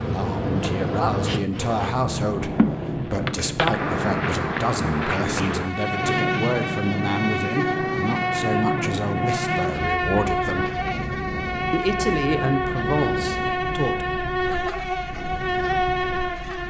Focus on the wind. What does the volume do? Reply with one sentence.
The loudness of the wind goes down.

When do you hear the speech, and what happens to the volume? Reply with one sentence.
You can hear the speech from 0.0 to 10.7 s, at a steady volume; and briefly from 11.7 to 14.1 s.